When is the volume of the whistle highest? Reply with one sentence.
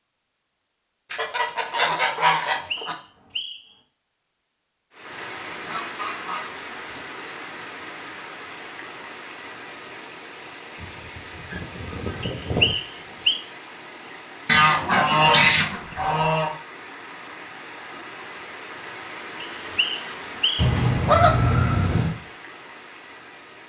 The volume of the whistle peaks at 13 seconds.